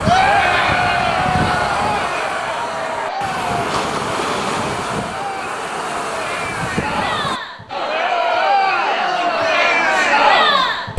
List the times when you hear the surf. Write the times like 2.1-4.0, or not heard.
0.0-7.4.